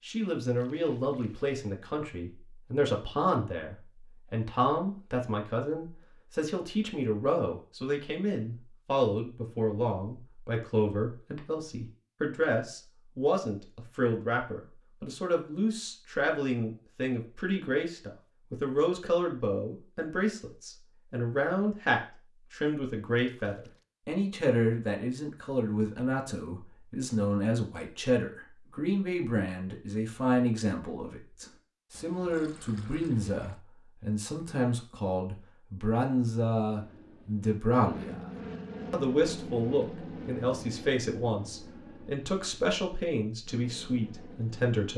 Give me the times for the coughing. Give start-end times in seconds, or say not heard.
not heard.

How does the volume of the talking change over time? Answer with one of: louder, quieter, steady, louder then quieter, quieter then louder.
steady.